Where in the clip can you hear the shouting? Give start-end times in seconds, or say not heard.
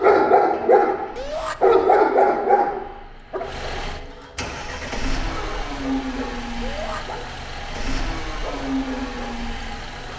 1.1-1.6, 6.6-7.0.